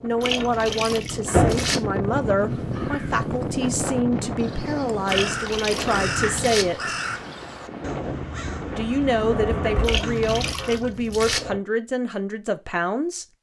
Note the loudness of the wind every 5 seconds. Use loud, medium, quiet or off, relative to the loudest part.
loud, medium, off.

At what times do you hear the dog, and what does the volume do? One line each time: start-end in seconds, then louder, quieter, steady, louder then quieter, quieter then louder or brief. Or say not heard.
not heard.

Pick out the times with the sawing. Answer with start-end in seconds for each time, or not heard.
not heard.